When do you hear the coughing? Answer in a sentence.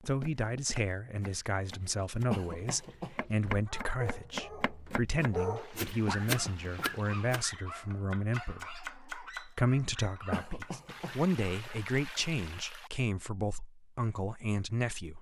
The coughing can be heard from 2.3 to 3.1 s, from 6.0 to 6.9 s and from 10.3 to 11.2 s.